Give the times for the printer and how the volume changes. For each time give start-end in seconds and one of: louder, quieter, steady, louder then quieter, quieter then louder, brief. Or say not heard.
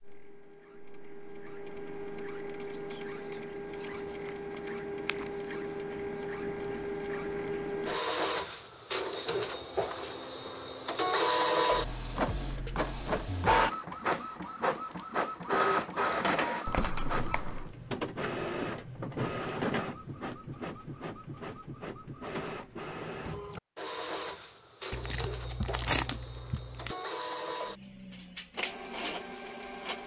0.0-30.0 louder then quieter.